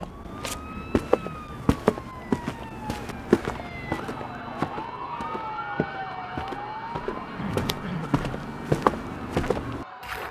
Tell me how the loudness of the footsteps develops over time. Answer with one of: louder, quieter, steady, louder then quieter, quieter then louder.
quieter then louder.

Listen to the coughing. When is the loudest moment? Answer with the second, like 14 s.
8 s.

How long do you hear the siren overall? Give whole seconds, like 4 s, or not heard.
10 s.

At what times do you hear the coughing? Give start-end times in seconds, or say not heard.
0.7-1.7, 7.3-8.4.